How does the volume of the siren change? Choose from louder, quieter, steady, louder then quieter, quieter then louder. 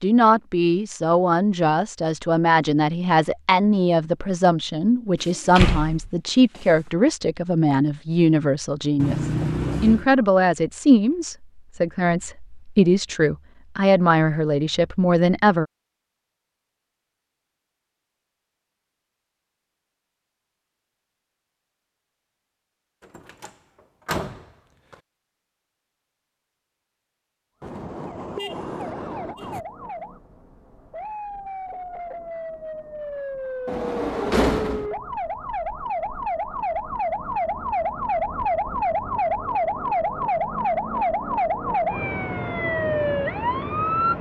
louder.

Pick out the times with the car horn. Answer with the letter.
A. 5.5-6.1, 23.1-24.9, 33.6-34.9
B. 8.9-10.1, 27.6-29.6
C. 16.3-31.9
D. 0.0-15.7
B.